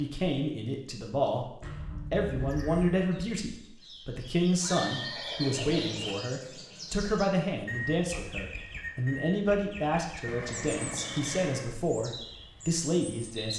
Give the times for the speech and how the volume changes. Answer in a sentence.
You can hear the speech from 0.0 to 13.5 s, at a steady volume.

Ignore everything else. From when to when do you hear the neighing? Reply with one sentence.
The neighing can be heard from 1.6 to 3.0 s, from 4.6 to 6.2 s and from 10.2 to 11.7 s.